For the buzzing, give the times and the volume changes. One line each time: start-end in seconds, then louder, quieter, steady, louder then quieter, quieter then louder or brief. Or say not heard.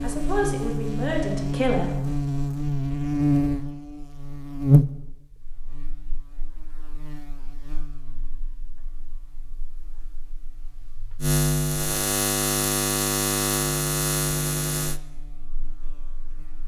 0.0-16.6 quieter then louder.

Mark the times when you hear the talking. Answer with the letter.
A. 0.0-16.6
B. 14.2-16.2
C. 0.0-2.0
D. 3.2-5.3
C.